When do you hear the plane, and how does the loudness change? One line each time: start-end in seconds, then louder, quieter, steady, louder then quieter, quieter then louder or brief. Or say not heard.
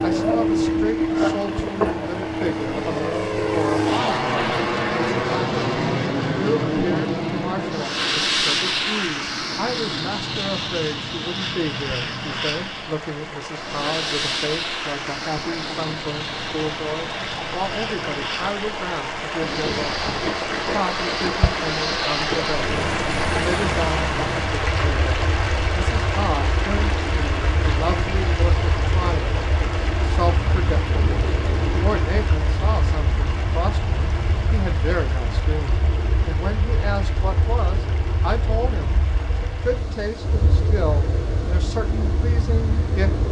0.0-43.2 quieter.